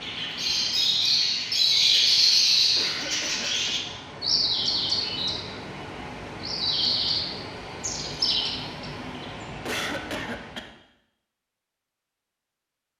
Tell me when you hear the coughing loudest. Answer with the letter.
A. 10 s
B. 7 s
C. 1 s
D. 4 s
A.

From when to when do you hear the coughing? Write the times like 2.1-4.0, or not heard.
2.8-3.8, 9.7-10.7.